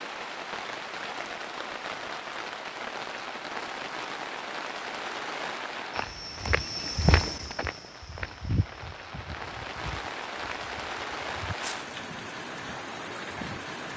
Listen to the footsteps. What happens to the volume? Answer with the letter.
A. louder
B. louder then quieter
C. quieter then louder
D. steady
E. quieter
E.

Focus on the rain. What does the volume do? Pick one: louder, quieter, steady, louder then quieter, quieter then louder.
quieter then louder.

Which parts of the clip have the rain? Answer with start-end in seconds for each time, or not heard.
0.0-13.9.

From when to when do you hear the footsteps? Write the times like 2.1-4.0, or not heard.
5.9-11.9.